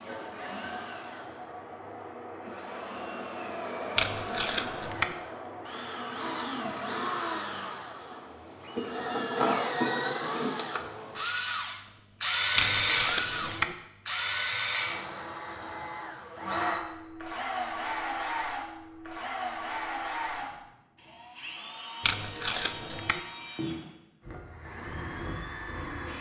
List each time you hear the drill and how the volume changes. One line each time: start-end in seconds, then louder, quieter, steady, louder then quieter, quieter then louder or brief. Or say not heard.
0.0-26.1 louder then quieter.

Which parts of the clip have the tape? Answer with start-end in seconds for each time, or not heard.
4.0-5.2, 12.6-13.8, 22.0-23.2.